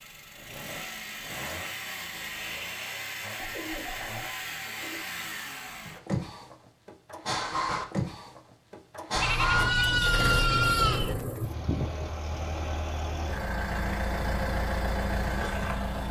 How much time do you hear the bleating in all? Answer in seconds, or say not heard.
2 s.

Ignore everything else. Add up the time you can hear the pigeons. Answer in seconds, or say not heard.
3 s.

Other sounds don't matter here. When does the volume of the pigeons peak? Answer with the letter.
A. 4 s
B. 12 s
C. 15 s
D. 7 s
B.